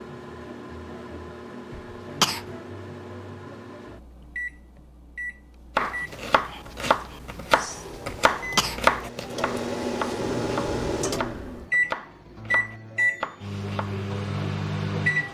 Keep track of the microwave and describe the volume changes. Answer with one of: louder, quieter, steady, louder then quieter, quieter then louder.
louder.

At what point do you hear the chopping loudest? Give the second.
9 s.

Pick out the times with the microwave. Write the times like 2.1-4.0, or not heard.
0.0-15.2.